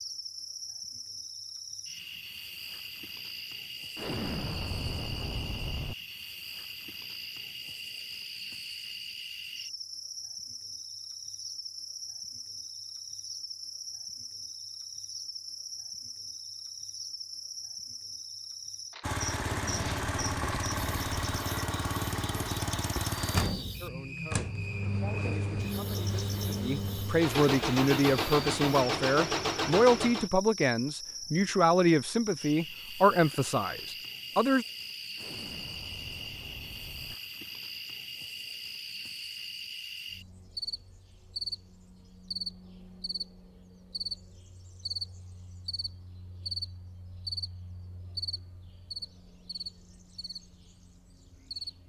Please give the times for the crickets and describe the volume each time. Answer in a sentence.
The crickets can be heard from 0.0 to 51.8 s, at a steady volume.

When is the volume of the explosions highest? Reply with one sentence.
The volume of the explosions peaks at 4 seconds.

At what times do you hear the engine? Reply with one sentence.
You can hear the engine from 19.0 to 30.3 s.